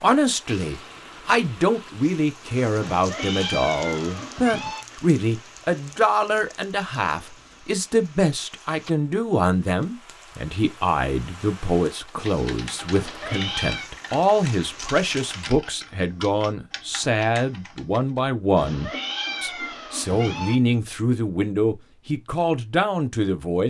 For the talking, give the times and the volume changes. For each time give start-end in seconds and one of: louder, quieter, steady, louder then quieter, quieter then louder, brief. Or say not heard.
0.0-23.6 steady.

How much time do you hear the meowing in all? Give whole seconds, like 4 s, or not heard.
5 s.